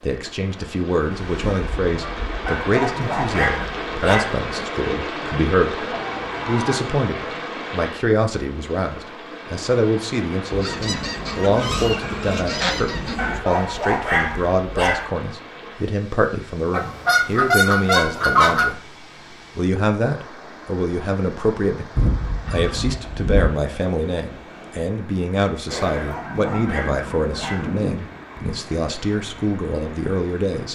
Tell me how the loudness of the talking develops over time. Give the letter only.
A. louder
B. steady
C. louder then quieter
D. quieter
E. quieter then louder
B.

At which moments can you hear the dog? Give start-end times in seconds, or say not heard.
2.5-4.3, 13.2-15.1, 25.9-27.7.